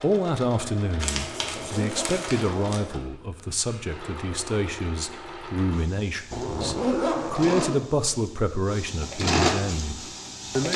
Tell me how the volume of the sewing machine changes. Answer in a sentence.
The loudness of the sewing machine goes up.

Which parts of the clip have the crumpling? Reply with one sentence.
The crumpling can be heard from 1.0 to 2.8 s.